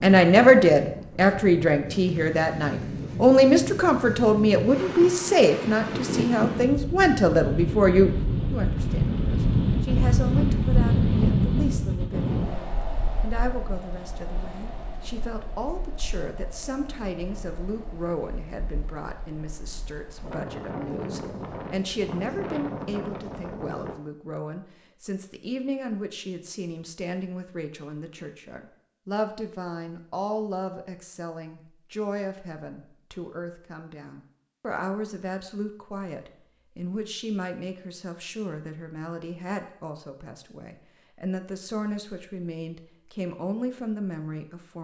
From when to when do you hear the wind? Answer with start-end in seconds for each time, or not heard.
0.0-23.9.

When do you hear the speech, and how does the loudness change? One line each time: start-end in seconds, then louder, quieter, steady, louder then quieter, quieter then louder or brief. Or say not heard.
0.0-44.7 quieter.